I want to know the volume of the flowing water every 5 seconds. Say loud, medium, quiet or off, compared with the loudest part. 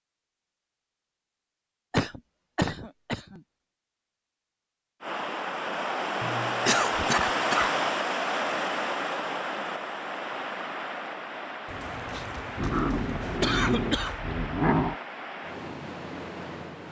off, loud, medium, medium.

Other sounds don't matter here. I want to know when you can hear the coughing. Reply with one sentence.
You can hear the coughing from 1.9 to 3.4 s, from 6.2 to 7.8 s and from 11.7 to 14.2 s.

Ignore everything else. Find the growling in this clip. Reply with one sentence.
The growling can be heard from 12.6 to 14.9 s.